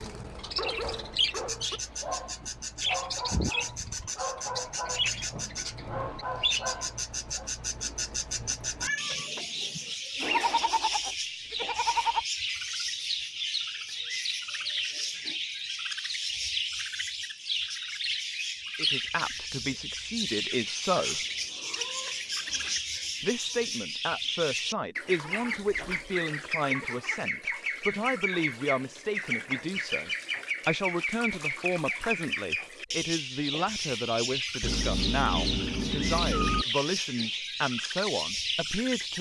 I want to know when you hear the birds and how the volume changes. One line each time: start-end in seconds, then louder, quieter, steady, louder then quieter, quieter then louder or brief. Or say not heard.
0.0-39.1 steady.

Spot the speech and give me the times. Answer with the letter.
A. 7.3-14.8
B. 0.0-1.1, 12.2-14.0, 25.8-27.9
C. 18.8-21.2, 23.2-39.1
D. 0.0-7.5
C.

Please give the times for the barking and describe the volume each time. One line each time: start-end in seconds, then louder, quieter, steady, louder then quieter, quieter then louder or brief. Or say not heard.
0.0-7.5 steady.